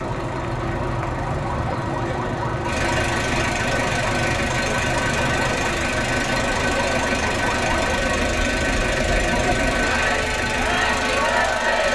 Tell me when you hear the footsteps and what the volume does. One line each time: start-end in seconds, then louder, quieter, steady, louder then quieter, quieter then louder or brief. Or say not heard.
not heard.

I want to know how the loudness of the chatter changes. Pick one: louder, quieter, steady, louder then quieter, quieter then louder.
louder.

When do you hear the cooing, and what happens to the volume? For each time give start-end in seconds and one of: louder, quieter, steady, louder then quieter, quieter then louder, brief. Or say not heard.
not heard.